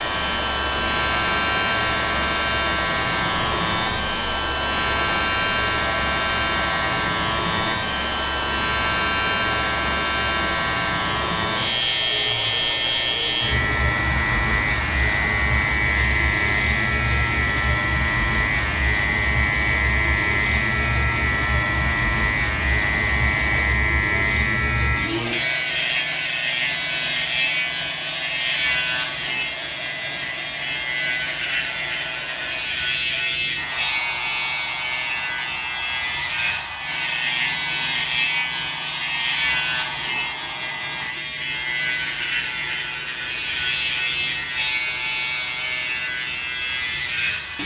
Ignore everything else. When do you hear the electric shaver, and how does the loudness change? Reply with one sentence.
The electric shaver can be heard from 0.0 to 47.6 s, at a steady volume.